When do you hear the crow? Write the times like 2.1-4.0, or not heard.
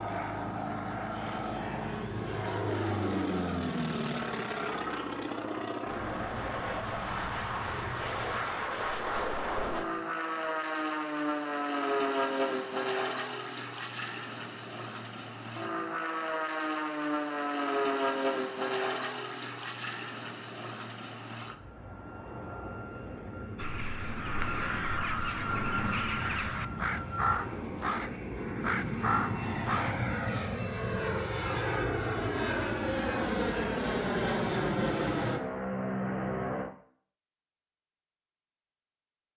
23.6-29.9.